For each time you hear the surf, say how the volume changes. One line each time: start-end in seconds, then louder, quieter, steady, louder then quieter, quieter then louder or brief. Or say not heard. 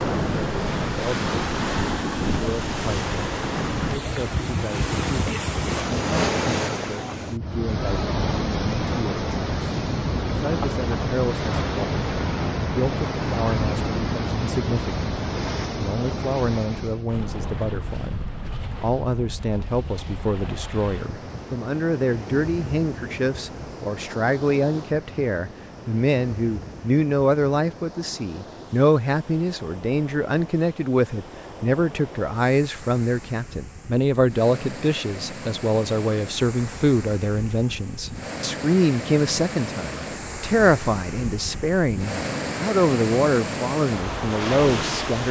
0.0-45.2 quieter then louder.